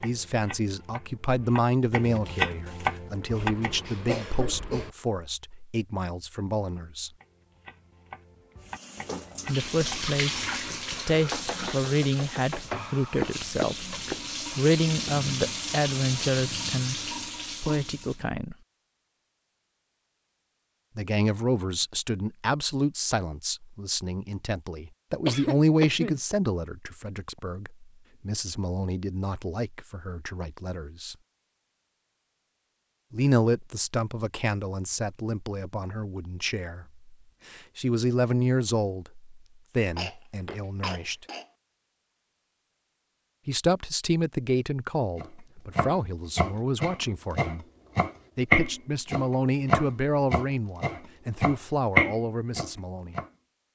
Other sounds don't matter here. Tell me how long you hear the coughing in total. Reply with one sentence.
The coughing can be heard for 4 seconds in total.